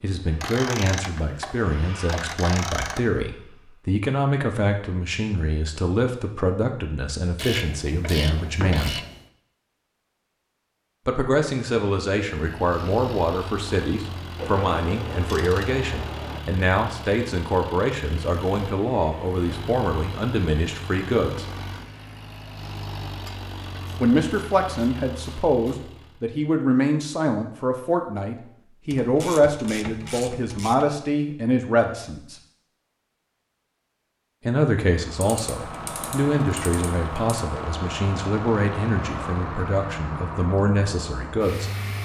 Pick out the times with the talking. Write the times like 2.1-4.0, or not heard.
0.0-9.0, 11.1-21.4, 23.9-32.4, 34.5-41.7.